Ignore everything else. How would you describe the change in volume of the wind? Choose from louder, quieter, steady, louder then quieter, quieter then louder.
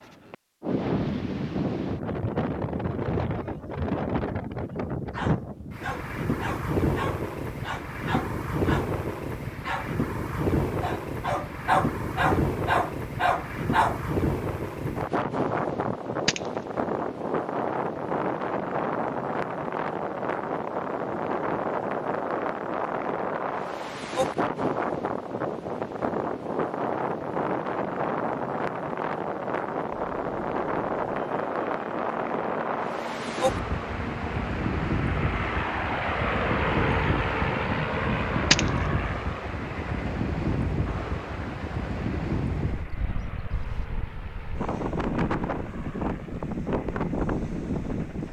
steady.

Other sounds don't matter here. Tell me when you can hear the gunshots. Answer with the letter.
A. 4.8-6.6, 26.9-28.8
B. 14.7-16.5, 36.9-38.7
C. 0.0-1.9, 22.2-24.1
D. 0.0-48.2
B.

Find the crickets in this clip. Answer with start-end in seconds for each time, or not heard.
not heard.